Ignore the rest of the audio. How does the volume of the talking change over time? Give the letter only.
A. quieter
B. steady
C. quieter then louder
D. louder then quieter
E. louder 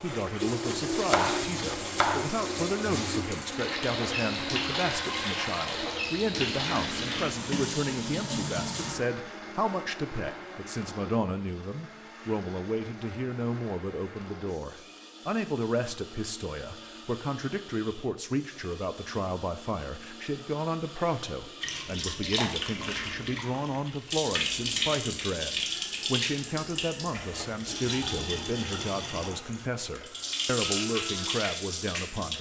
B.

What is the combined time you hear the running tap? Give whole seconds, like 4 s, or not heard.
20 s.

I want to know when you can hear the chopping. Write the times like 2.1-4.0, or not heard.
0.9-2.4.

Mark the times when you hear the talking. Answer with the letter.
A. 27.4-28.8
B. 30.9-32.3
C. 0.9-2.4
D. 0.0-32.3
D.